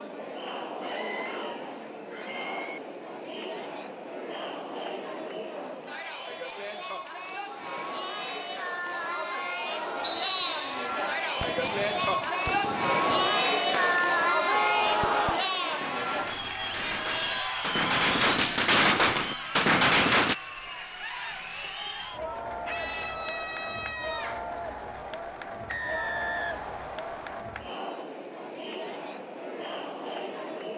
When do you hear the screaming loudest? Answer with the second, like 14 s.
15 s.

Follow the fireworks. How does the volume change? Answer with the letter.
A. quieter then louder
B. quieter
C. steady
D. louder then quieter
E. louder
E.